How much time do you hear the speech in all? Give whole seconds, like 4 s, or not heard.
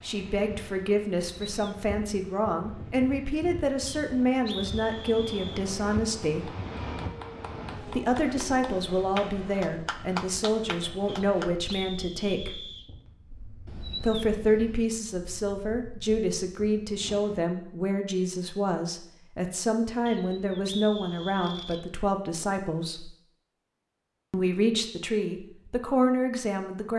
23 s.